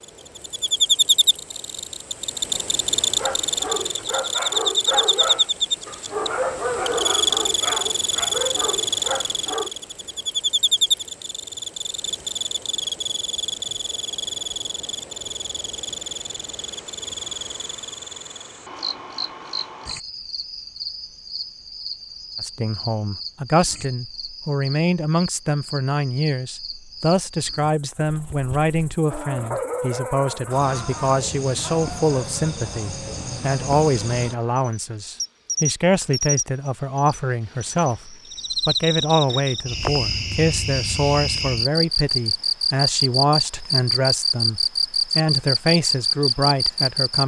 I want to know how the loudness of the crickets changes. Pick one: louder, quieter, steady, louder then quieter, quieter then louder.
quieter then louder.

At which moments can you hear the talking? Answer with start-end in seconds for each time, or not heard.
22.4-47.2.